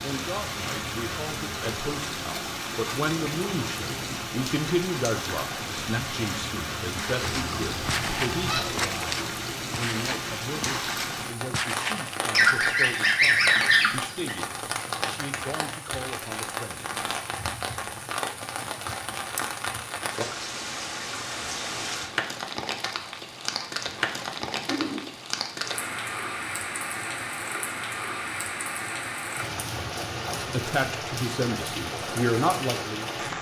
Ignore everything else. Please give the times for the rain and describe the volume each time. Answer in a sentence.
The rain can be heard from 0.0 to 33.3 s, at a steady volume.